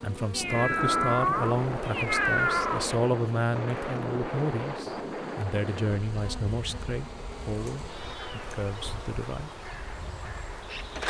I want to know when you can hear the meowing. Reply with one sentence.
The meowing can be heard from 0.3 to 3.0 s and from 7.7 to 8.6 s.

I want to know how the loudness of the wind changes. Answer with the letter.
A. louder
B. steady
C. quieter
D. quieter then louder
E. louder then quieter
C.